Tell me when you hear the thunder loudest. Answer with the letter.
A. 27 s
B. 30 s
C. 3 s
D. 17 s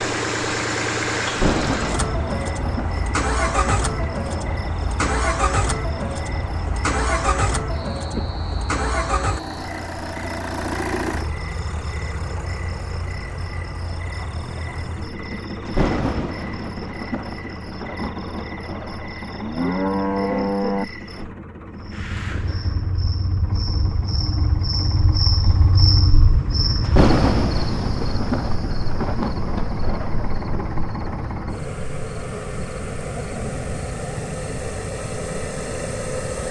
A.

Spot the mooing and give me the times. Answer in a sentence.
The mooing can be heard from 19.4 to 20.9 s.